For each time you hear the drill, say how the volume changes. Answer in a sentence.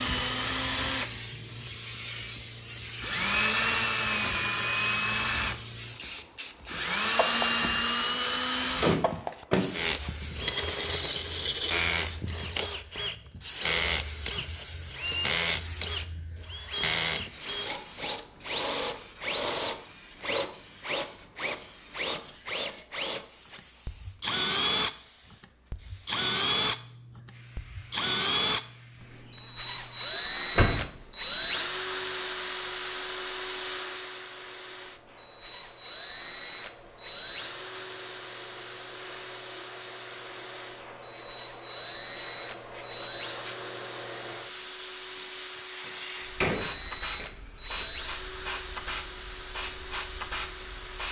The drill can be heard briefly from 0.0 to 1.1 s; and from 2.4 to 51.0 s, getting quieter.